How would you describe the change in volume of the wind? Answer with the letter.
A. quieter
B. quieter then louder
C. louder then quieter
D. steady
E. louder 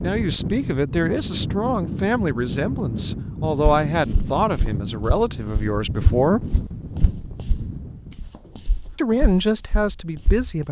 D.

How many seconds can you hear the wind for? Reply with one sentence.
You can hear the wind for 8 seconds altogether.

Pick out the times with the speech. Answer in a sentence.
You can hear the speech from 0.0 to 6.5 s and from 8.9 to 10.6 s.